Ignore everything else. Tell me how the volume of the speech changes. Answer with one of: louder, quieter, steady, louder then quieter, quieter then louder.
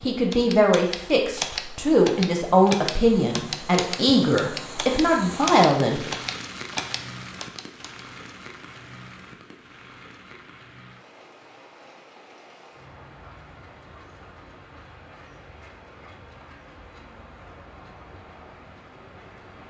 steady.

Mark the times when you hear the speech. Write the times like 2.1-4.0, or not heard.
0.1-6.1.